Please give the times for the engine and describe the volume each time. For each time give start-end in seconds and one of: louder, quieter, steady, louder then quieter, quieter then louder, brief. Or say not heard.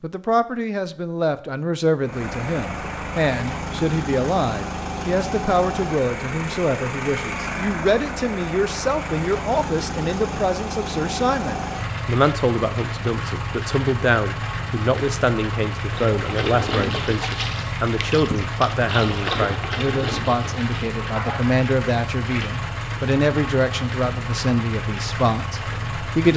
2.0-26.3 steady.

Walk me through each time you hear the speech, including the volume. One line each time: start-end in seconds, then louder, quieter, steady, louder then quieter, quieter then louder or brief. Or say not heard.
0.0-26.3 steady.